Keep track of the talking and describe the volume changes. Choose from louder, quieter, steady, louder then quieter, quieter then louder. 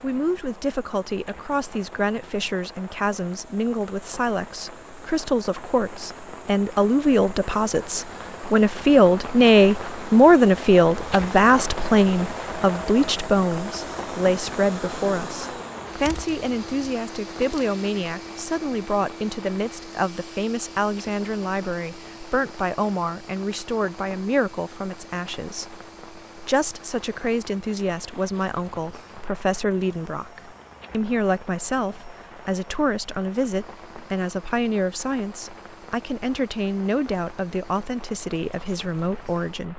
louder then quieter.